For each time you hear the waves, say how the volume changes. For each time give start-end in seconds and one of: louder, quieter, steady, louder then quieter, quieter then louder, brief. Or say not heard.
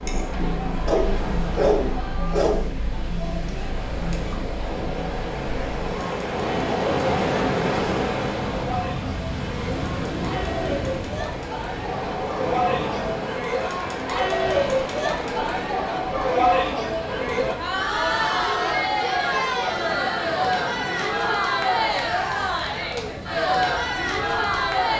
0.0-24.9 louder then quieter.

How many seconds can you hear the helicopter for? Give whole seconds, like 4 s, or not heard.
not heard.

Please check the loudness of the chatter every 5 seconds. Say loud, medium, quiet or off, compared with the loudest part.
medium, medium, loud, loud, loud.